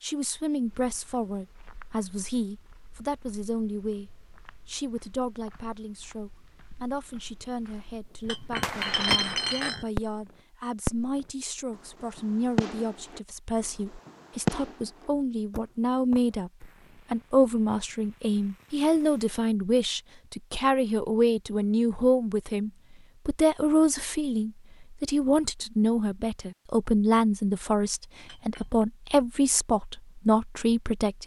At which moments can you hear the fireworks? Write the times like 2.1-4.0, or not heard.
7.9-10.2, 10.8-19.4.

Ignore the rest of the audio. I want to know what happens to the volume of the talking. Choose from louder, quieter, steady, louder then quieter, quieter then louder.
louder.